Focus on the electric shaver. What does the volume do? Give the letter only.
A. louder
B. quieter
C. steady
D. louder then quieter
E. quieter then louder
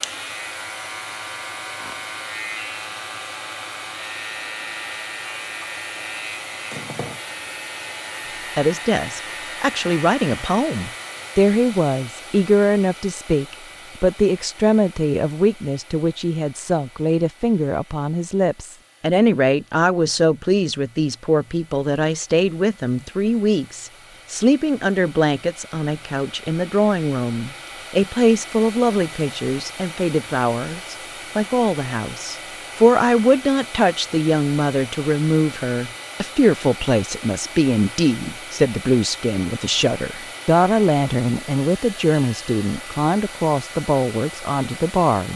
C.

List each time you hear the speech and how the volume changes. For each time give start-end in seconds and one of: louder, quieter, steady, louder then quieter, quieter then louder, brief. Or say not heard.
8.6-45.3 steady.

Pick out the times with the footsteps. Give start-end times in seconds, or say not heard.
not heard.